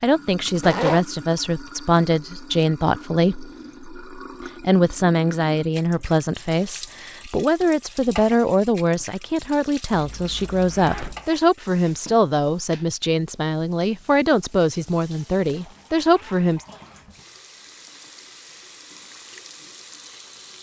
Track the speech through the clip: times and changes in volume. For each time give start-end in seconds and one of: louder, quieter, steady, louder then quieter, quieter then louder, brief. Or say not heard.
0.0-16.6 steady.